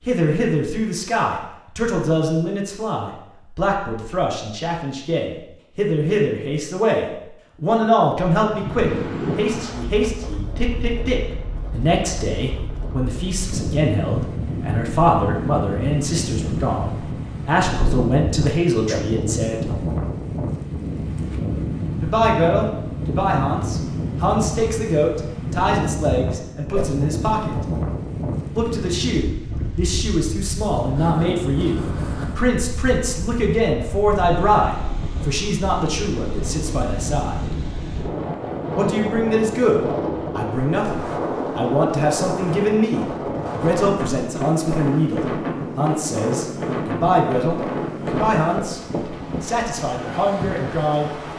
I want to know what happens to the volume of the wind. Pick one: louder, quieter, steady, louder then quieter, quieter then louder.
steady.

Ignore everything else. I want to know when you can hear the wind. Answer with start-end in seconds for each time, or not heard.
8.4-51.3.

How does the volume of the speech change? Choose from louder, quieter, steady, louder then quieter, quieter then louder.
steady.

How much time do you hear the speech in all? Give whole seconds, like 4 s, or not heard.
47 s.